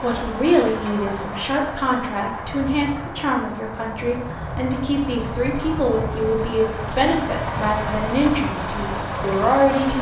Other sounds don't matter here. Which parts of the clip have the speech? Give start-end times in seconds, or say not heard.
0.0-9.9.